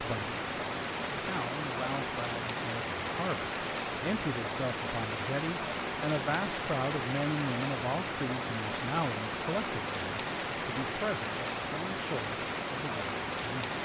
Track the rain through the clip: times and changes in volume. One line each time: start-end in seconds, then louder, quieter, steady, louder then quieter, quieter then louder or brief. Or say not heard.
0.0-13.8 steady.